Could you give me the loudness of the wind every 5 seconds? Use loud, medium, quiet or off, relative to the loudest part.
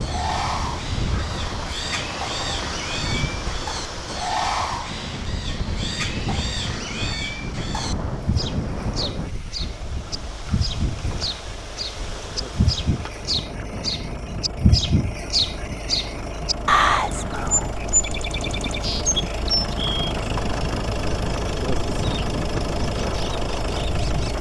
loud, loud, medium, medium, loud.